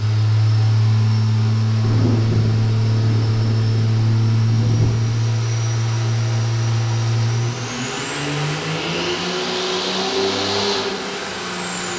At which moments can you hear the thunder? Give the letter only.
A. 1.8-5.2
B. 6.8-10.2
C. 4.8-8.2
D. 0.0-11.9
A.